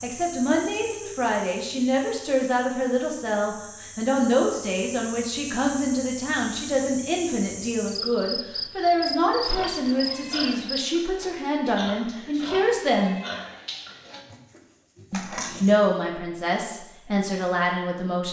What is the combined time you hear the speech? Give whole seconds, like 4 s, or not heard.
16 s.